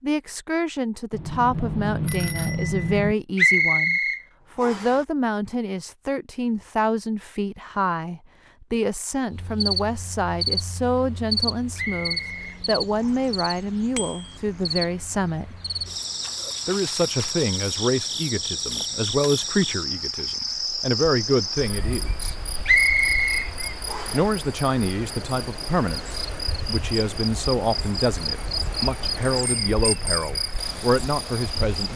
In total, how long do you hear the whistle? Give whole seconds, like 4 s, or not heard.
5 s.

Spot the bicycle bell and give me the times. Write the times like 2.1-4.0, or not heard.
1.1-3.1, 13.9-14.3, 29.2-30.1.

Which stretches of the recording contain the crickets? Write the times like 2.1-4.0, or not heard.
9.3-31.9.